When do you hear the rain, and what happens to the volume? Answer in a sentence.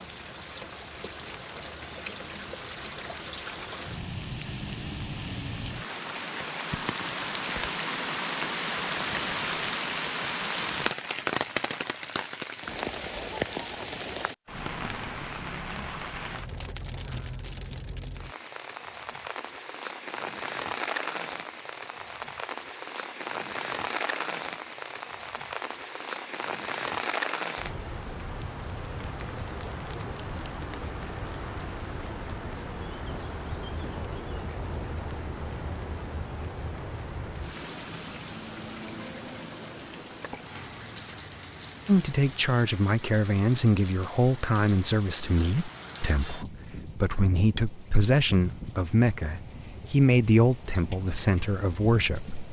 The rain can be heard from 0.0 to 52.4 s, getting quieter.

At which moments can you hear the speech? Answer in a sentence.
You can hear the speech from 41.9 to 52.4 s.